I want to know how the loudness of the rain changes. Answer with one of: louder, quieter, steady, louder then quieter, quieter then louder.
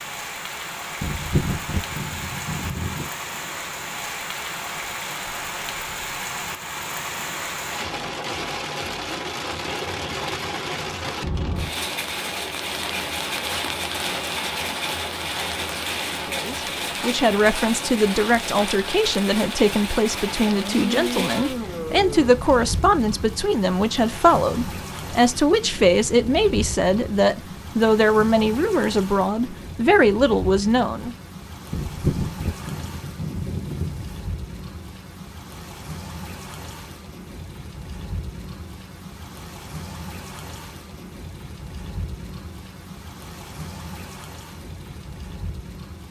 quieter.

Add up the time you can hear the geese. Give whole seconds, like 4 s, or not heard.
5 s.